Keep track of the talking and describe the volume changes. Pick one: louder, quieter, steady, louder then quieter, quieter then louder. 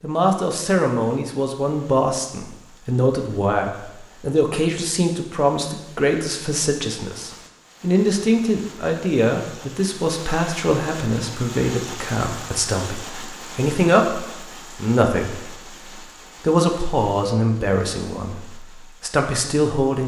steady.